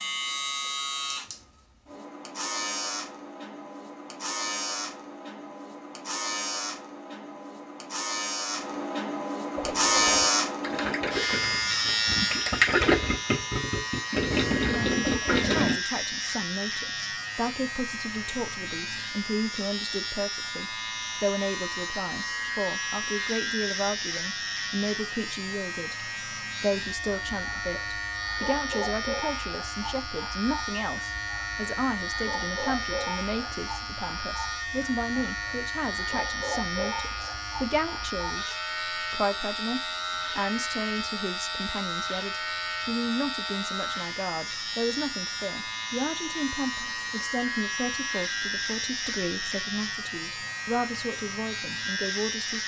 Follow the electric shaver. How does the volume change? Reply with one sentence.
The volume of the electric shaver stays about the same.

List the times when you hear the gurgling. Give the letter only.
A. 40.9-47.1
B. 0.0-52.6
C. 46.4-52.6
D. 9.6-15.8
D.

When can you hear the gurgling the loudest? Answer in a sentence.
The volume of the gurgling peaks at 13 seconds.